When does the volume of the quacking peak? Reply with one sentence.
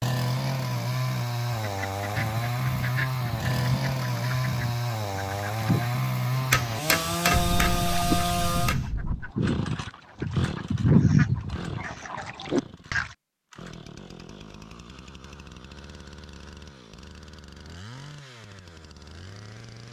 The volume of the quacking peaks at 11 seconds.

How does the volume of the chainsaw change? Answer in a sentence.
The volume of the chainsaw goes down.